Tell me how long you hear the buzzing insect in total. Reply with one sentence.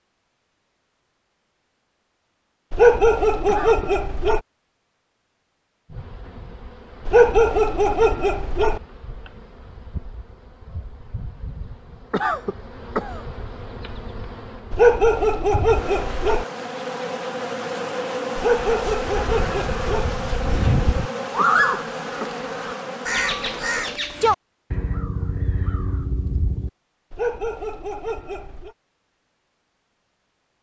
You can hear the buzzing insect for 18 seconds altogether.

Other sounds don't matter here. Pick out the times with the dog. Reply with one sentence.
You can hear the dog from 2.7 to 4.4 s, from 7.0 to 8.8 s, from 14.7 to 16.4 s, from 18.4 to 20.1 s and from 27.1 to 28.7 s.